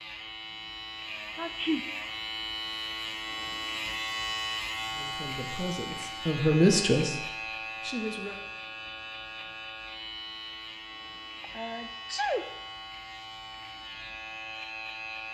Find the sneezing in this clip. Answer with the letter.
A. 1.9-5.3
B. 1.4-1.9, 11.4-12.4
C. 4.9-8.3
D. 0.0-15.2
B.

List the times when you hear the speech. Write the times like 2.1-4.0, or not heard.
4.9-8.3.